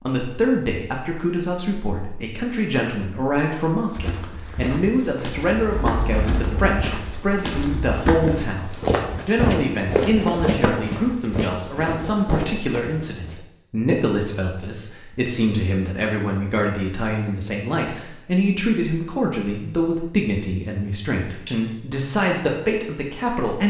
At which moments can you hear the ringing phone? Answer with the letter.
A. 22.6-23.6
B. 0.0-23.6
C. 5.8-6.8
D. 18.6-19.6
C.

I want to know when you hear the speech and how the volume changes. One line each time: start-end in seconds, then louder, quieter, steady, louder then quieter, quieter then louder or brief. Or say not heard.
0.0-23.6 steady.